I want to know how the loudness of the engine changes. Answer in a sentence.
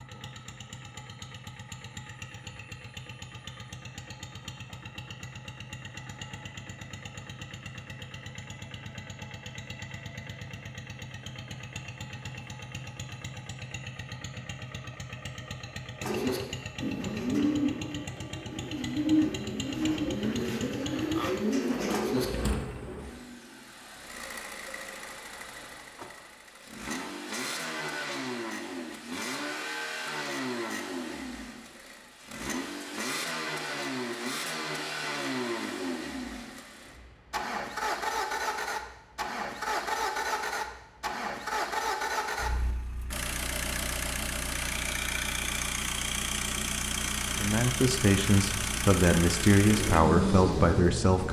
The volume of the engine goes up.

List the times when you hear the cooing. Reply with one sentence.
You can hear the cooing from 16.0 to 22.2 s and from 49.6 to 51.2 s.